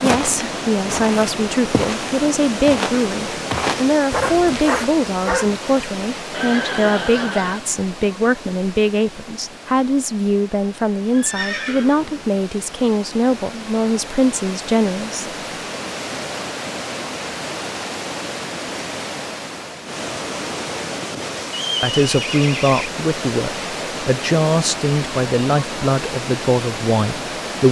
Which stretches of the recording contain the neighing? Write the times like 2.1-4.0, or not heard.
6.3-7.6, 11.1-12.3, 21.5-22.9.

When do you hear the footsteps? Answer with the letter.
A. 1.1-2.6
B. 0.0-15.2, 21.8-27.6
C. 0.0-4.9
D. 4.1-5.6
C.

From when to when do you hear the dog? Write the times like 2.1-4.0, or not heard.
4.1-5.6.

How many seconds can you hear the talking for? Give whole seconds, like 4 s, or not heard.
21 s.